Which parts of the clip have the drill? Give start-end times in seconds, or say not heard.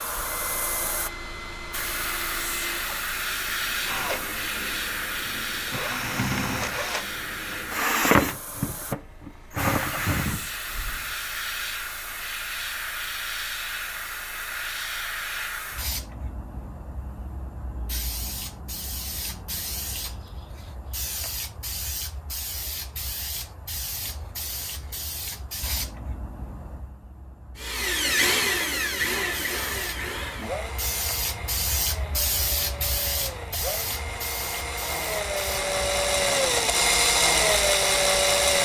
0.0-11.2, 27.6-38.6.